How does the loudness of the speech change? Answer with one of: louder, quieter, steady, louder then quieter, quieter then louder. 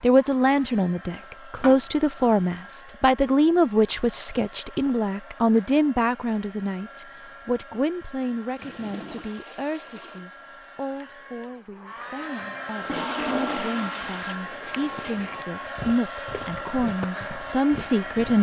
quieter then louder.